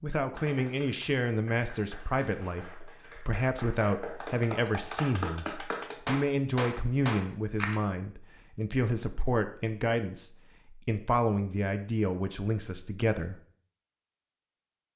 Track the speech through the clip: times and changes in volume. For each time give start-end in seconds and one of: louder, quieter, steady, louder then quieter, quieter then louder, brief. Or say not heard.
0.0-13.3 steady.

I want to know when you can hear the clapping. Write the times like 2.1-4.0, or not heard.
0.3-7.8.